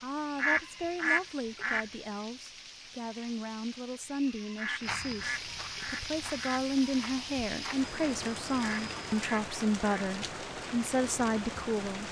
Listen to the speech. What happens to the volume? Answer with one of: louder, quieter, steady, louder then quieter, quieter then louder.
louder.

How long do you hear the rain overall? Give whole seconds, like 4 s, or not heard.
12 s.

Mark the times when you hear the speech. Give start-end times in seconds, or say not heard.
0.0-12.0.